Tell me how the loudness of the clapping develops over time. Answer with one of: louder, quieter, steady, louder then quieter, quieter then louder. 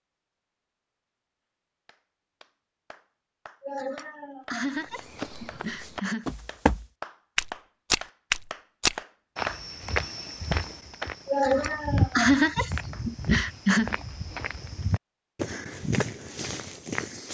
louder then quieter.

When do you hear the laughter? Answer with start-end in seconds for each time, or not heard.
3.6-6.3, 11.2-13.9.